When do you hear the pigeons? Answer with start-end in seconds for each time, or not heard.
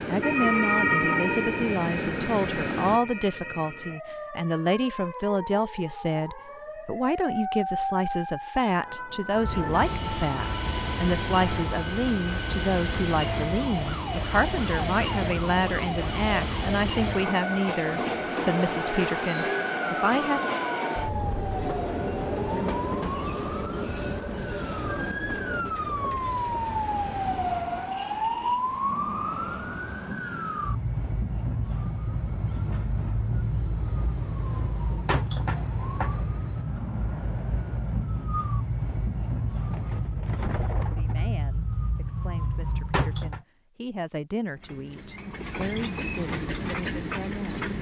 0.0-1.8, 39.7-41.2.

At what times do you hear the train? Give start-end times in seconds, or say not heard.
0.0-3.0, 9.3-40.0, 44.5-47.7.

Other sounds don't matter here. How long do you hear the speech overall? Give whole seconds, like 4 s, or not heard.
27 s.